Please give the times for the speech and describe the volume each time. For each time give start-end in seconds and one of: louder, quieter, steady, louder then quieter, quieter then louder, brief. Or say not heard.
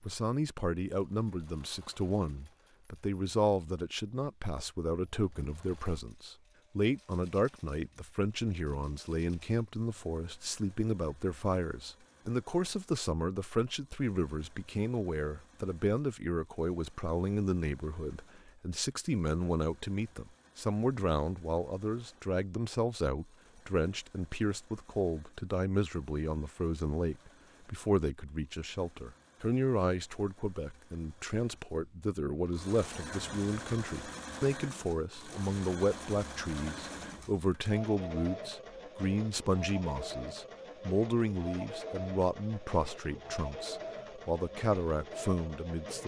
0.0-46.0 steady.